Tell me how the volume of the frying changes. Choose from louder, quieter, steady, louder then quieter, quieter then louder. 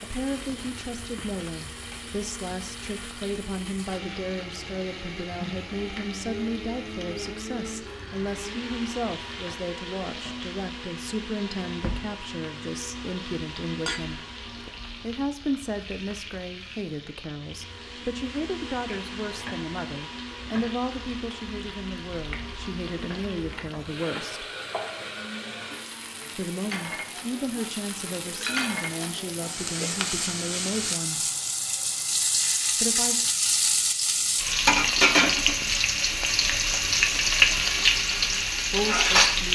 louder.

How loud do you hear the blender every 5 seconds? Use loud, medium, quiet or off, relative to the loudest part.
loud, loud, loud, loud, loud, medium, quiet, off.